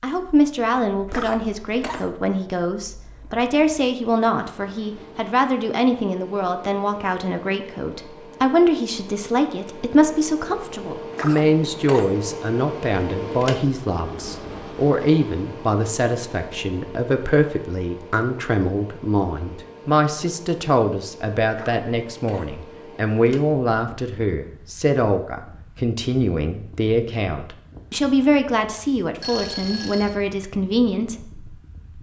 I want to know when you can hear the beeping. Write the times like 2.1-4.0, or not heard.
29.2-30.1.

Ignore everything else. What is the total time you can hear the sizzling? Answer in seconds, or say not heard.
not heard.